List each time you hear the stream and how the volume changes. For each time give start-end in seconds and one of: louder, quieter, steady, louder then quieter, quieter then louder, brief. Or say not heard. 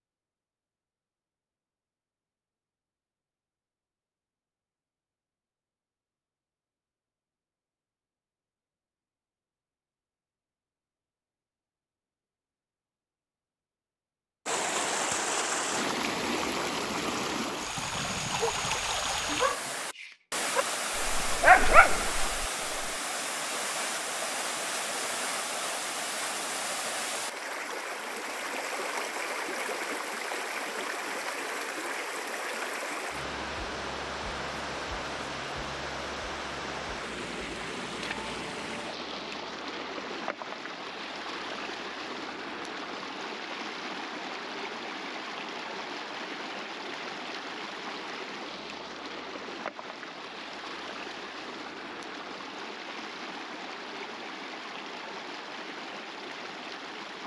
14.4-57.2 quieter.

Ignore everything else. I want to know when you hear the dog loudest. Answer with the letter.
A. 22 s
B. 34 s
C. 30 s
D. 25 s
A.